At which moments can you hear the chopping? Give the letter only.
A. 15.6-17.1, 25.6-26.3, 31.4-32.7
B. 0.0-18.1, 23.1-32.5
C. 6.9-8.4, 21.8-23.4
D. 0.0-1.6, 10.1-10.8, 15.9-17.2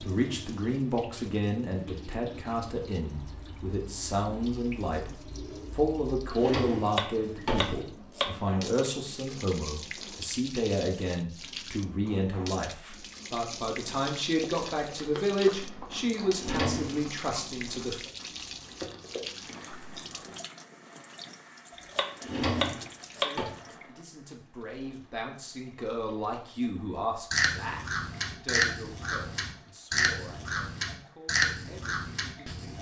C.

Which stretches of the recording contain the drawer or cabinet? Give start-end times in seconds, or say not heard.
6.3-7.8, 16.4-17.1, 22.2-23.5.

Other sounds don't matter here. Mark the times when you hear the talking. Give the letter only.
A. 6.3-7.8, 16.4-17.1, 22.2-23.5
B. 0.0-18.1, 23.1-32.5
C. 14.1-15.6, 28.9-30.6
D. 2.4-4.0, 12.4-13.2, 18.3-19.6
B.